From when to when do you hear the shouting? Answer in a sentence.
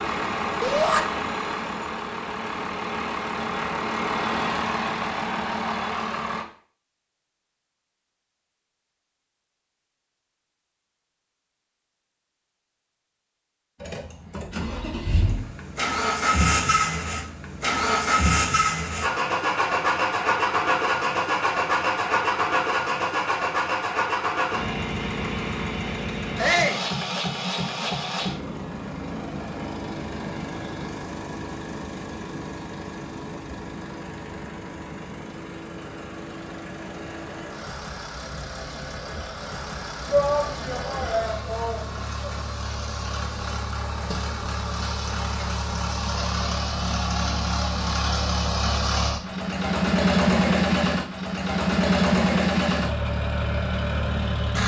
You can hear the shouting from 0.6 to 1.0 s, from 26.4 to 26.9 s and from 40.1 to 42.3 s.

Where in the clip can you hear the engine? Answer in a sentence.
You can hear the engine from 0.0 to 6.5 s and from 13.8 to 54.6 s.